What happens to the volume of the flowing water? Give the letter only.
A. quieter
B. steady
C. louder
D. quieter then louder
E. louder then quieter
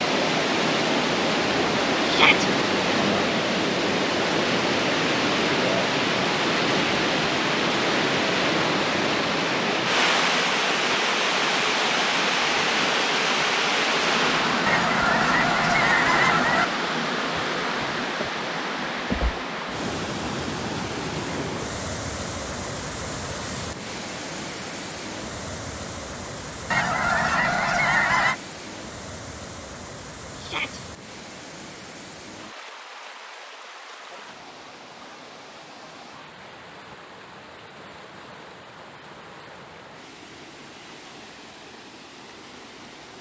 A.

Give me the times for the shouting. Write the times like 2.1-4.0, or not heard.
2.0-2.5, 30.4-30.8.